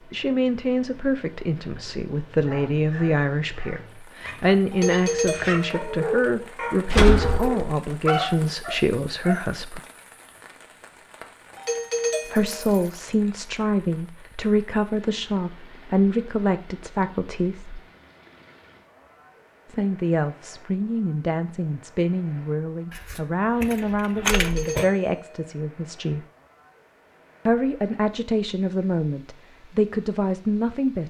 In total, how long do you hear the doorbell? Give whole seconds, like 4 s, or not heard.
4 s.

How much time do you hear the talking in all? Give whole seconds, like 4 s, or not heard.
25 s.